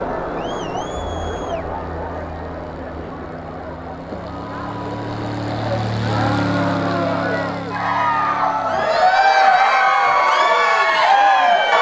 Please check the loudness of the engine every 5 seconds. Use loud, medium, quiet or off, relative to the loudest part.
medium, loud, off.